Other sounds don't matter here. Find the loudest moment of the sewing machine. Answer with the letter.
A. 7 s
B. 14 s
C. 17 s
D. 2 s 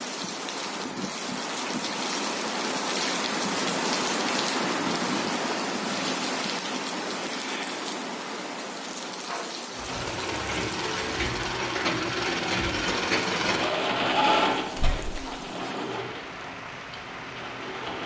B.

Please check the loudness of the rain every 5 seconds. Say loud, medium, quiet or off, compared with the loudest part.
loud, loud, medium, medium.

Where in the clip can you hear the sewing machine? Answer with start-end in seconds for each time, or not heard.
9.7-18.0.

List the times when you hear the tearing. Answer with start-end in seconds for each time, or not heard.
14.8-15.2.